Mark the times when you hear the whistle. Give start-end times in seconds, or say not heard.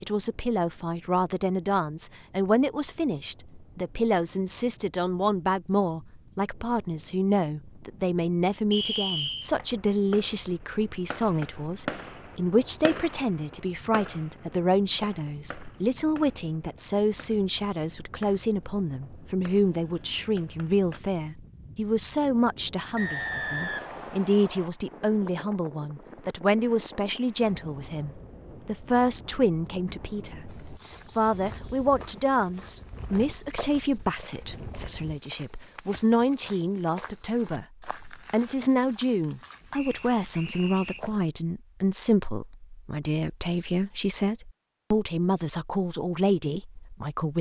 8.7-9.5, 22.9-24.7, 39.7-41.0.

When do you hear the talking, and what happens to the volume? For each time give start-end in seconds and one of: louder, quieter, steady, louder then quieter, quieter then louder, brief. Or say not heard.
0.0-47.3 steady.